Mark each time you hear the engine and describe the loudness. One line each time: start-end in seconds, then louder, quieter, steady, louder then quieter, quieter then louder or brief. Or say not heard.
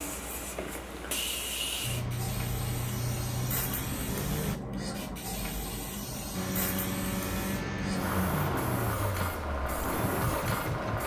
1.8-4.6 brief
6.3-11.0 quieter then louder.